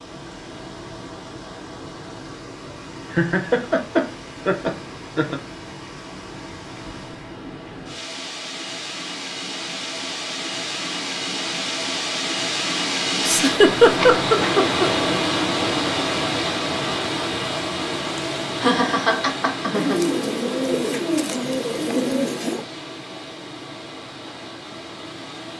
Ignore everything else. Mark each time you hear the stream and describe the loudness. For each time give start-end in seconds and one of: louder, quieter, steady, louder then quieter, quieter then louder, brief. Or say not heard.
0.0-25.5 louder then quieter.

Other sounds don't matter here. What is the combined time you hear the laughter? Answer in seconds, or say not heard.
6 s.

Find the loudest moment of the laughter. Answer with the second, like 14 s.
14 s.